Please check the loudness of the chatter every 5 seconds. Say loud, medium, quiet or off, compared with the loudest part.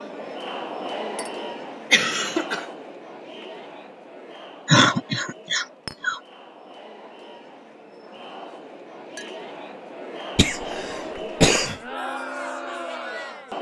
loud, medium, loud.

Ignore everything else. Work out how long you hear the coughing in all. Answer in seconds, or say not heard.
4 s.